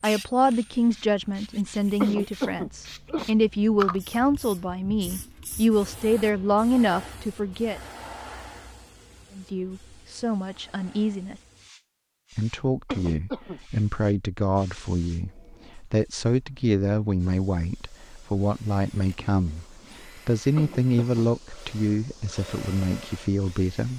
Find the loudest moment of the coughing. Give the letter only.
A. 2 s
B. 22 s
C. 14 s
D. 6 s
A.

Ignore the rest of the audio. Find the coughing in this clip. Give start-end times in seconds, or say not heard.
2.0-3.3, 12.8-13.6, 20.6-21.2.